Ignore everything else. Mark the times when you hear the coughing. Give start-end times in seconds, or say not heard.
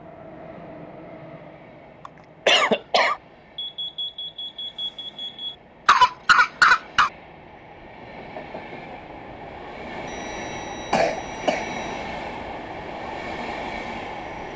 2.0-3.1, 5.8-7.1, 10.9-11.6.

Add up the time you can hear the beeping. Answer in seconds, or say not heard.
4 s.